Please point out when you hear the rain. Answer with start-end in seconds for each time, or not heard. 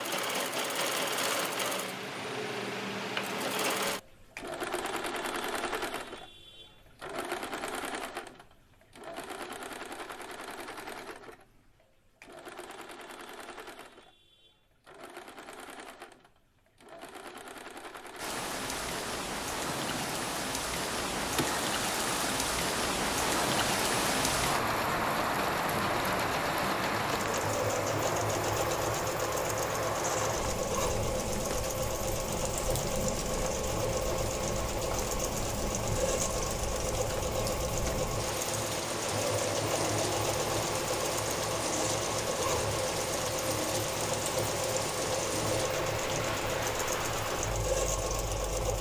18.1-48.7.